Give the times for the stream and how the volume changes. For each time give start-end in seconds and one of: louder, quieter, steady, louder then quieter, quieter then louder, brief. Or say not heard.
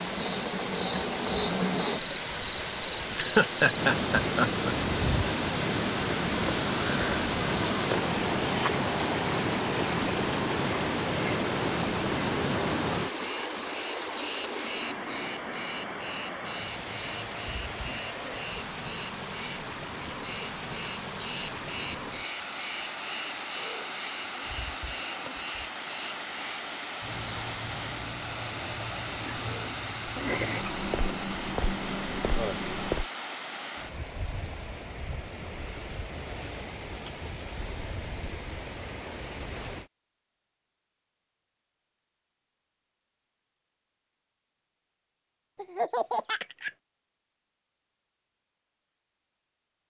0.0-39.9 quieter.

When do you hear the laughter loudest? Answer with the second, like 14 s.
4 s.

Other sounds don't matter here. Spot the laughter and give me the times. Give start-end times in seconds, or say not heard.
3.1-4.8, 45.5-46.7.